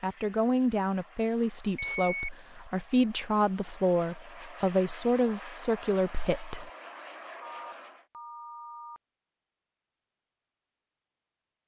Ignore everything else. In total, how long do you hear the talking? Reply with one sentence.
The talking can be heard for 7 seconds in total.